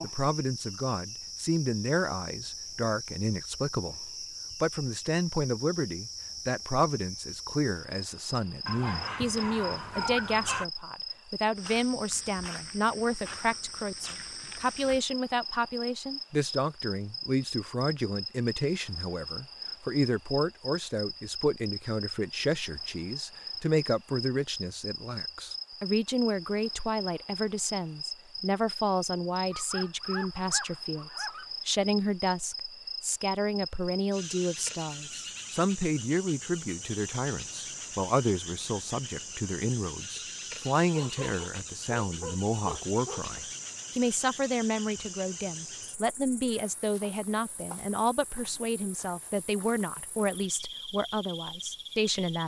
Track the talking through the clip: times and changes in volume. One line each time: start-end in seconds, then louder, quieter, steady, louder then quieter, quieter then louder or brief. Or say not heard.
0.0-52.4 steady.